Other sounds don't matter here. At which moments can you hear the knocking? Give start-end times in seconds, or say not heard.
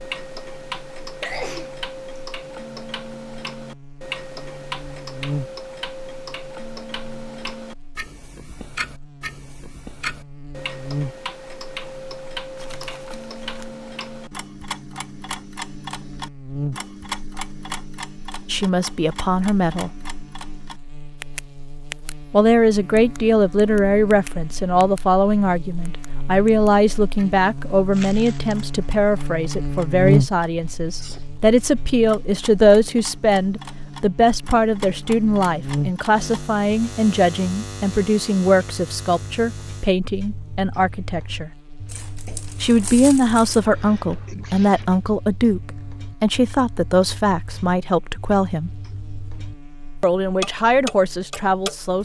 not heard.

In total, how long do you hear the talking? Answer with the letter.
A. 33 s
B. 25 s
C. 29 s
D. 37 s
C.